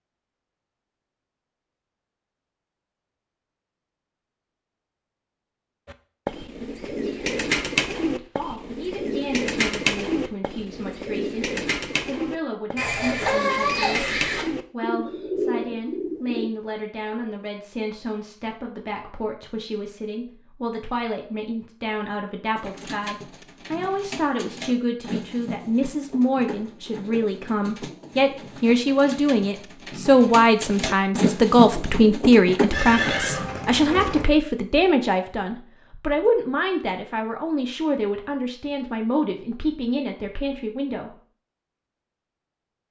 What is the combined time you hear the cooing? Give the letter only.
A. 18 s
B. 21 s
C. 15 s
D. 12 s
B.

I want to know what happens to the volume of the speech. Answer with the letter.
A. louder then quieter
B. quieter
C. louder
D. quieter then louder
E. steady
A.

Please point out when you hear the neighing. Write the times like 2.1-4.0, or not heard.
12.8-14.4, 32.7-34.2.